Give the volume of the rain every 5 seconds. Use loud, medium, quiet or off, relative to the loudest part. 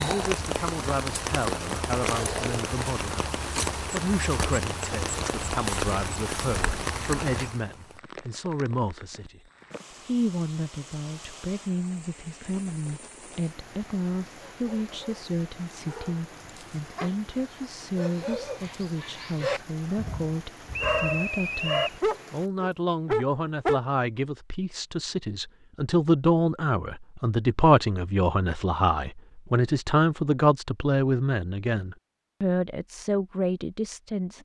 loud, loud, quiet, quiet, quiet, off, off.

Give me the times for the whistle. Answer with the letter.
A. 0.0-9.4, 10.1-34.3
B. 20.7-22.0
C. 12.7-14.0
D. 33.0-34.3
B.